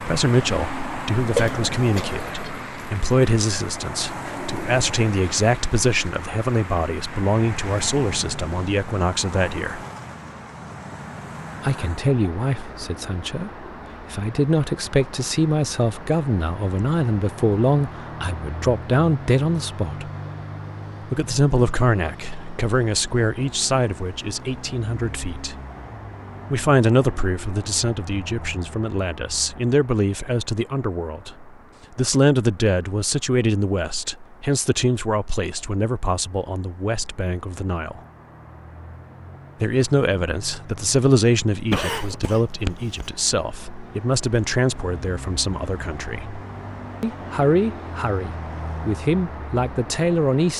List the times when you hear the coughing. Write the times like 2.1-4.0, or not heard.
1.3-2.5, 41.7-43.0.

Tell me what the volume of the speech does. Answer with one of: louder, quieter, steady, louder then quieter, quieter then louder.
steady.